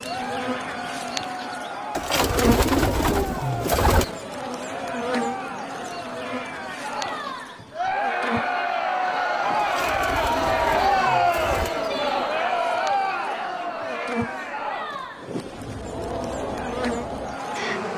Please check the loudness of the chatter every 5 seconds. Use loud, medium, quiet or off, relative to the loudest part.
medium, loud, loud, medium.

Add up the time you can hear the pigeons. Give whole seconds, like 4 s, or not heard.
5 s.